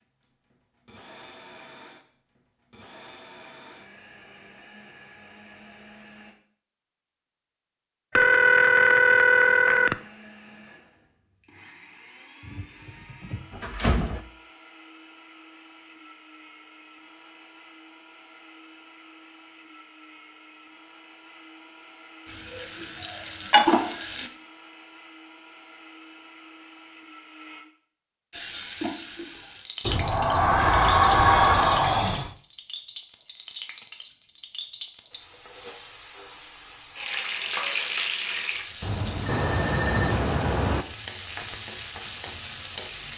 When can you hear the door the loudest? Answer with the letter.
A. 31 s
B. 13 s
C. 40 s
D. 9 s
A.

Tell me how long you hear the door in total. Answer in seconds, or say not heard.
4 s.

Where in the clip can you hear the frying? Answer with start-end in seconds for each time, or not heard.
22.2-24.3, 28.3-43.1.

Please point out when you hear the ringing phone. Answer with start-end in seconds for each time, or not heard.
8.2-9.9, 38.8-40.9.